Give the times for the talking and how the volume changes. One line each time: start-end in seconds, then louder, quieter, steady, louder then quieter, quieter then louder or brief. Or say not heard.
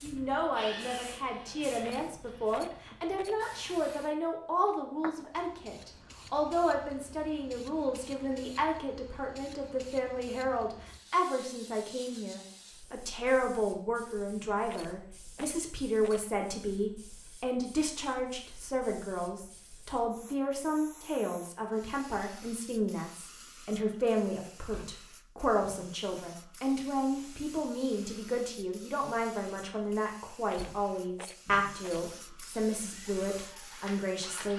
0.0-34.5 steady.